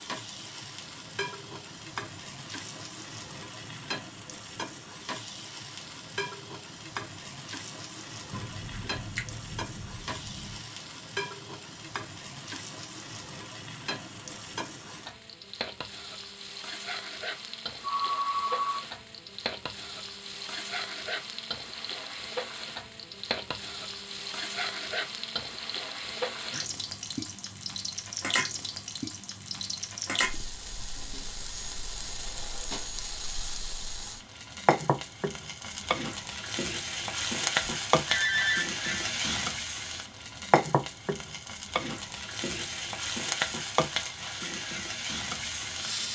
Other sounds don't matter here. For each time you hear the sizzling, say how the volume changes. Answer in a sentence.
The sizzling can be heard from 0.0 to 46.1 s, getting louder.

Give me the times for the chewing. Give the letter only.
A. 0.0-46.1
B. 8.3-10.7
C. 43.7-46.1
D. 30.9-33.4
B.